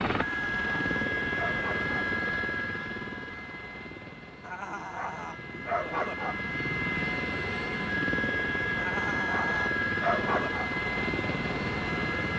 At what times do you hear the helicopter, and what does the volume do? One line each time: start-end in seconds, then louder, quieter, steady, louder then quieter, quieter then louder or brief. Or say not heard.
0.0-12.3 quieter then louder.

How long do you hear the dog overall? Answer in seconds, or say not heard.
6 s.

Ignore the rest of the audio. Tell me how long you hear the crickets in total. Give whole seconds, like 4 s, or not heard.
not heard.